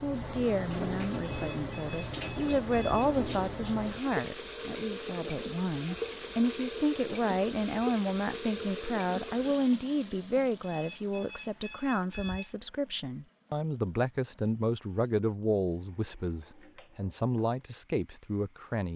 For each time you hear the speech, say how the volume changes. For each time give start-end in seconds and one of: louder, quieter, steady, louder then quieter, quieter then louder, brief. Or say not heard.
0.0-18.9 steady.